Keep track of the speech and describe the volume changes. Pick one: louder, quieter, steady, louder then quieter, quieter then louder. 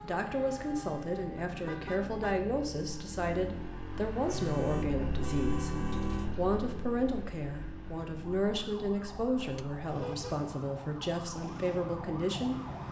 steady.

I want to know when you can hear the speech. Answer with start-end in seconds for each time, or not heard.
0.0-12.6.